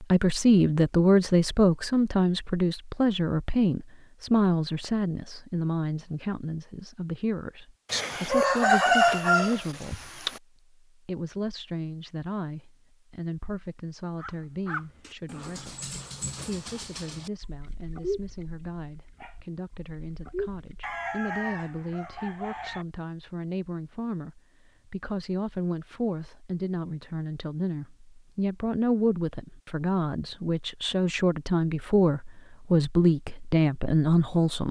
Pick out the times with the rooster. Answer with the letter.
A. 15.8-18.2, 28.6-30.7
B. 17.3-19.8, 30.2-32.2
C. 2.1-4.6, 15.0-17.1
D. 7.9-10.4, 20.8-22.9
D.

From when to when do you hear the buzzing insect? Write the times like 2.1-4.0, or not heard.
not heard.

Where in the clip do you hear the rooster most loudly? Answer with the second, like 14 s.
9 s.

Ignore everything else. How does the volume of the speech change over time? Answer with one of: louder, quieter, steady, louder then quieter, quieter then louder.
quieter then louder.